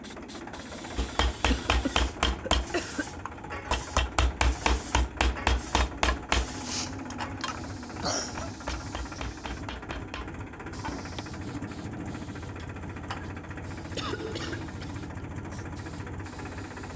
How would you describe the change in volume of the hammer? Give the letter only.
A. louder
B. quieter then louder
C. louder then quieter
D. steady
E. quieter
E.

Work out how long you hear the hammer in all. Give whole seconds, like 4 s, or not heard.
10 s.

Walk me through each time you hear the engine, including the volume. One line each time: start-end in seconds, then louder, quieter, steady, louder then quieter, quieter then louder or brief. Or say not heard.
0.0-16.9 steady.